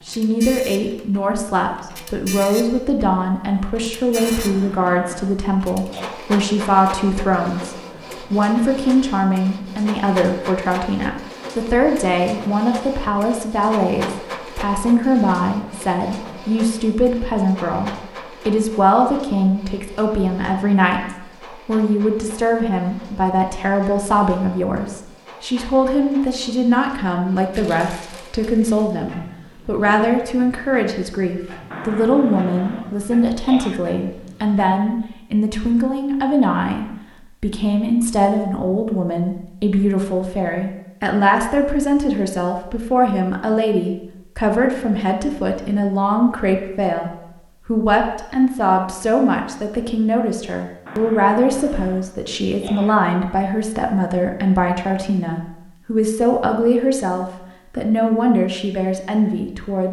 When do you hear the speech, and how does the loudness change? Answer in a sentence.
The speech can be heard from 0.1 to 59.8 s, at a steady volume.